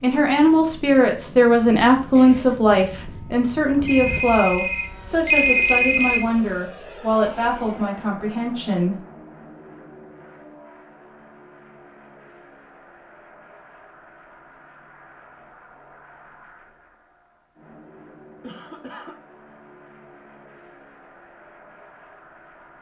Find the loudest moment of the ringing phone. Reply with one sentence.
The loudest moment of the ringing phone is at 5 seconds.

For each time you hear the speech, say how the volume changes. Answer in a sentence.
You can hear the speech from 0.0 to 9.0 s, getting quieter.